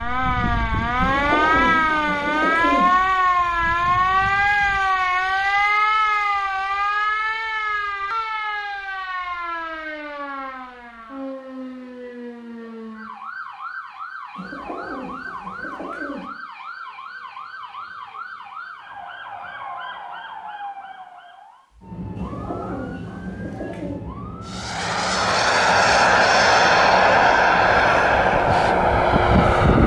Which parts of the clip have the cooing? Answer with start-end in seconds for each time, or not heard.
0.9-2.9, 14.3-16.3, 22.1-24.0.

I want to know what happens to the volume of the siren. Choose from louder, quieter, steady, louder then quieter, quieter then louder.
quieter.